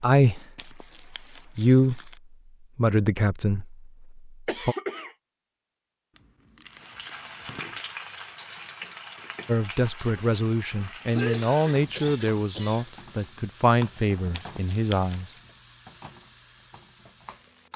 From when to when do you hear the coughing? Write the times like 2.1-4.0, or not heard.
4.5-5.2, 11.1-12.9.